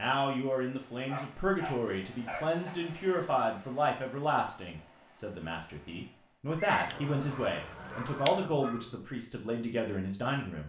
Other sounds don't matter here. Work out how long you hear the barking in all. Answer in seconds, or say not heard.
4 s.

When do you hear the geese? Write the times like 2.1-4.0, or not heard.
6.8-8.5.